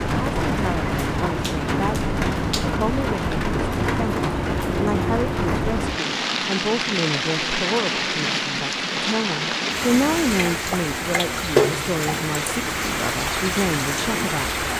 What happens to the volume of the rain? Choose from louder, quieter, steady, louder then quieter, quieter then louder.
steady.